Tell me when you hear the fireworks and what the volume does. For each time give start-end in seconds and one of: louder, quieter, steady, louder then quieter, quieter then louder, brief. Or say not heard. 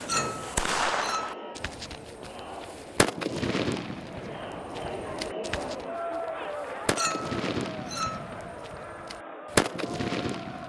0.0-10.6 quieter then louder.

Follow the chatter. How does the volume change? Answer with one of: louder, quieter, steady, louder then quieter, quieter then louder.
louder then quieter.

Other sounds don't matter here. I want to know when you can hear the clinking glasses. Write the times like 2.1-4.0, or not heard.
0.1-1.4, 7.0-8.2.